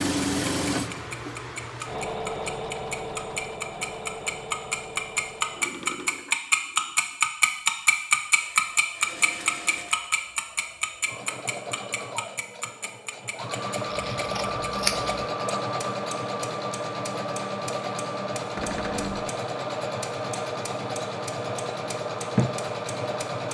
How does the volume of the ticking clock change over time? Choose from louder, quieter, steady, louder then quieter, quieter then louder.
louder then quieter.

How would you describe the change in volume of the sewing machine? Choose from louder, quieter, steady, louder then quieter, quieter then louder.
quieter then louder.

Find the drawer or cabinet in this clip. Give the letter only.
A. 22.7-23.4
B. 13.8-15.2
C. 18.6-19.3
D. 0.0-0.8
C.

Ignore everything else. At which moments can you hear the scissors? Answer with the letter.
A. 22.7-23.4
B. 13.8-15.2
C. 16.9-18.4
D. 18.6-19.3
B.